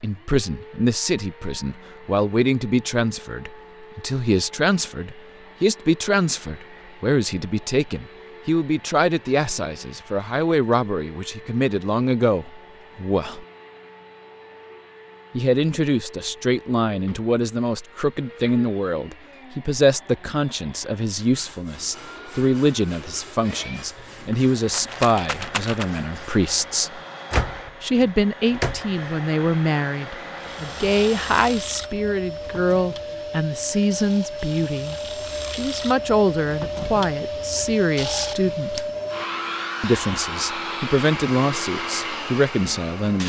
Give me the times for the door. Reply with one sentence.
You can hear the door from 27.3 to 28.9 s.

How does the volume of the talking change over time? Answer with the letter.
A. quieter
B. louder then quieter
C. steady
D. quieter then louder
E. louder
C.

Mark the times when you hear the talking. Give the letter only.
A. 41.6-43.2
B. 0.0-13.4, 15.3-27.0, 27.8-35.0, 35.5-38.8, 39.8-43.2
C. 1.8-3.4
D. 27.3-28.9
B.